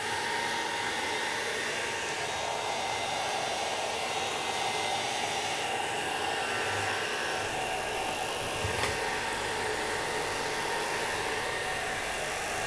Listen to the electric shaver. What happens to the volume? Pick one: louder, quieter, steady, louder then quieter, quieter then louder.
steady.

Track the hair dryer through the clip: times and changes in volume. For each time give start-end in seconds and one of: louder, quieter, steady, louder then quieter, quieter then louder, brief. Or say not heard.
0.0-12.6 steady.